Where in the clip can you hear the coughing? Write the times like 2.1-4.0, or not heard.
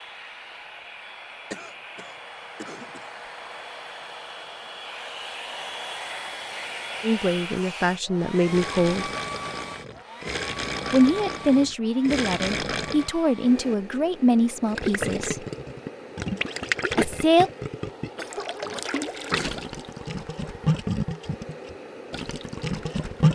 1.5-3.1, 18.1-19.6.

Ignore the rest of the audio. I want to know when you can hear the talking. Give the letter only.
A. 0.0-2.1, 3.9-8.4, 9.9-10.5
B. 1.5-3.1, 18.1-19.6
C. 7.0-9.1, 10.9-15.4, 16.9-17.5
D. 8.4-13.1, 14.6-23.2
C.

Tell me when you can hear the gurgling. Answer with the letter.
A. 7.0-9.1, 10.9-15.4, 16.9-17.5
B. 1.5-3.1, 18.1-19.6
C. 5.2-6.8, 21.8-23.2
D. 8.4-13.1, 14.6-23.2
D.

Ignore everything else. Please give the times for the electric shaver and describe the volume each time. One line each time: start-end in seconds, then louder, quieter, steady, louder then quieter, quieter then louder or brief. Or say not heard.
not heard.